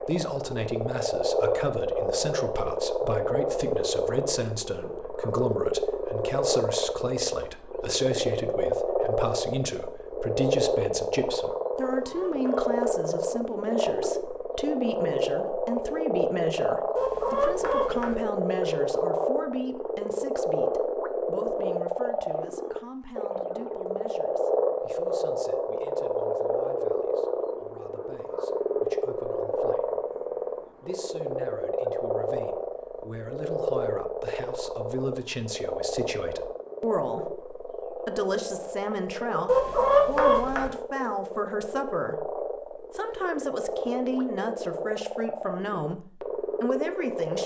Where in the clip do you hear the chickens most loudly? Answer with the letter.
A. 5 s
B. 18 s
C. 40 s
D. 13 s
C.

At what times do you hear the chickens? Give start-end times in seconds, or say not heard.
11.8-12.7, 16.9-18.1, 39.5-40.7.